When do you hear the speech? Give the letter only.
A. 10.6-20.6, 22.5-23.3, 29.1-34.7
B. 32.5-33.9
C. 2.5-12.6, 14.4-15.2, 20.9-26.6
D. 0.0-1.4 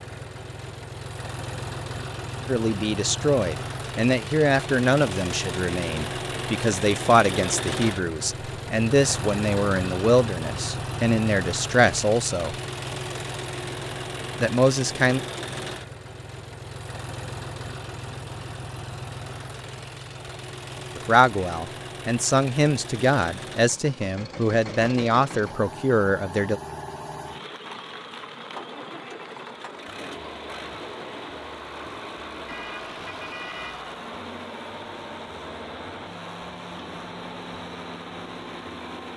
C.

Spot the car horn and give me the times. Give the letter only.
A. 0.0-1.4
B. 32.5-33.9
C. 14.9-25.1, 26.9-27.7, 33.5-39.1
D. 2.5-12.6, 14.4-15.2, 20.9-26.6
B.